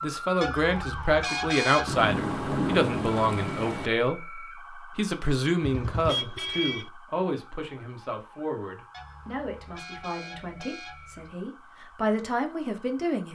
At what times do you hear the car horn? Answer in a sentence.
The car horn can be heard from 0.4 to 1.9 s, from 5.6 to 6.9 s and from 8.9 to 11.3 s.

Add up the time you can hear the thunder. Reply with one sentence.
You can hear the thunder for 2 seconds altogether.